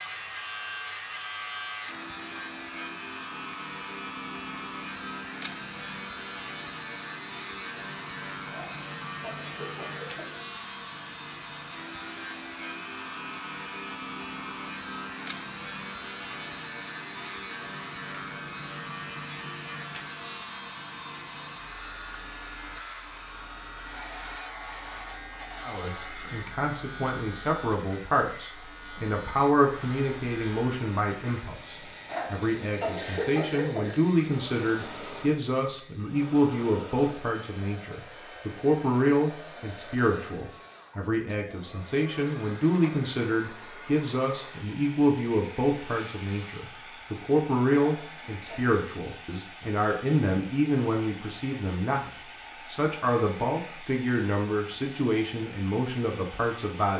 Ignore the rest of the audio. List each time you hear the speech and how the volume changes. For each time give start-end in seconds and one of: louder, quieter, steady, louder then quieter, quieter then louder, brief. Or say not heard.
25.6-56.9 steady.